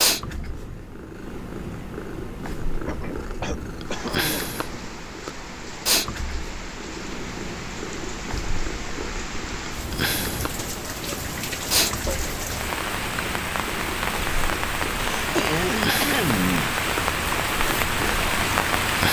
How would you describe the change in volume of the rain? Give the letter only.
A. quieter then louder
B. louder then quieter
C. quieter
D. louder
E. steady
D.